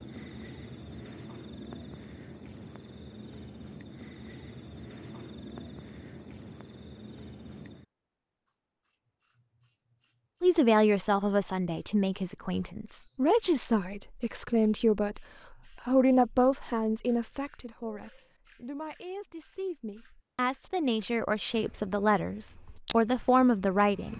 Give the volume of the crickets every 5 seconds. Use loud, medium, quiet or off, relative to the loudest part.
quiet, quiet, loud, loud, loud.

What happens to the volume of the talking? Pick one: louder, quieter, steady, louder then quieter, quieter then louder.
quieter then louder.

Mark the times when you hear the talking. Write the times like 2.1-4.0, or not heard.
10.4-24.1.